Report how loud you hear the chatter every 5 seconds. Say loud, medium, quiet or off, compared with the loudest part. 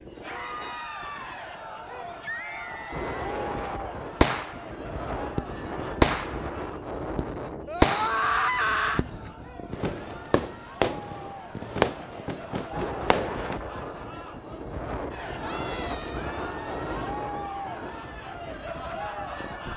loud, medium, medium, loud.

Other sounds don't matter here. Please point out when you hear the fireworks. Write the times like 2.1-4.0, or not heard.
4.2-4.7, 5.3-6.5, 7.2-8.2, 8.9-13.6.